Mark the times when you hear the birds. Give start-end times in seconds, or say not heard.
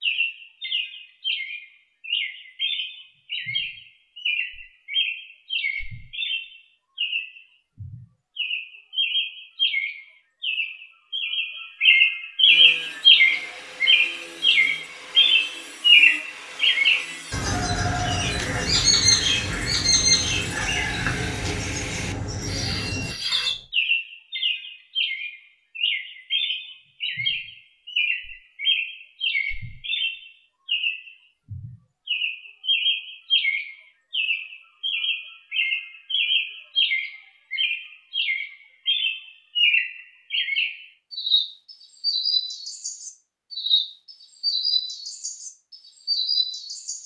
0.0-47.0.